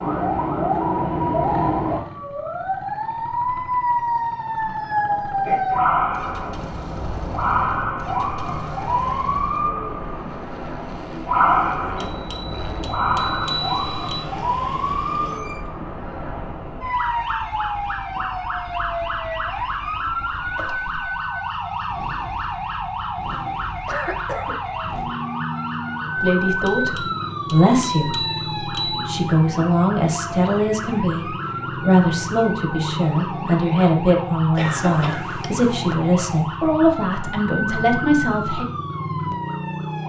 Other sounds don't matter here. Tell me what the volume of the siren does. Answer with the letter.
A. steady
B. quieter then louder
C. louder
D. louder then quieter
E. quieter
E.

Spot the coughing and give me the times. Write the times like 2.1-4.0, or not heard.
5.5-6.0, 23.9-24.6, 34.5-36.0.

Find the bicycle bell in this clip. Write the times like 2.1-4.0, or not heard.
11.9-14.2, 26.6-29.1.